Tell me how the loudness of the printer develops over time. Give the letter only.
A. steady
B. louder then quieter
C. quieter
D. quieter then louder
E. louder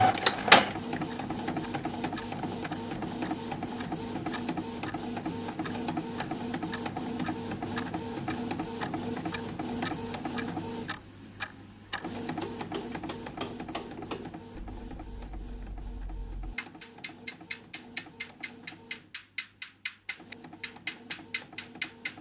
C.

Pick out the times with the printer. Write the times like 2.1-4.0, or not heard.
0.0-22.1.